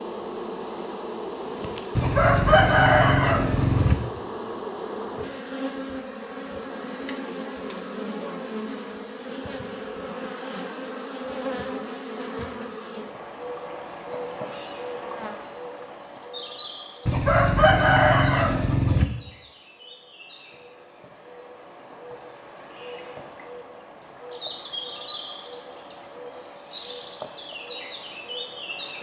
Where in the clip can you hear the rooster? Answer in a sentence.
You can hear the rooster from 1.9 to 4.0 s and from 17.1 to 19.1 s.